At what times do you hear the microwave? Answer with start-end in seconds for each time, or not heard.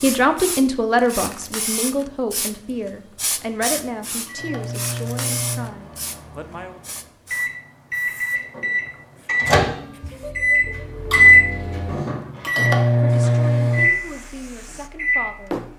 4.0-15.6.